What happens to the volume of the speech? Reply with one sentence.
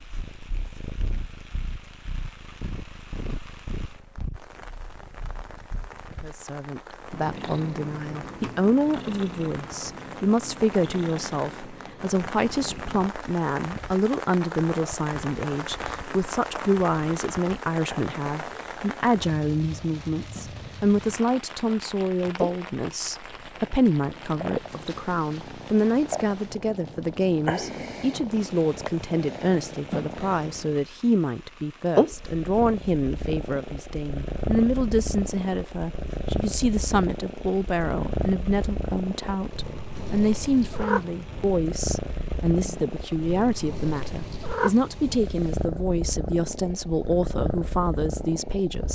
The volume of the speech stays about the same.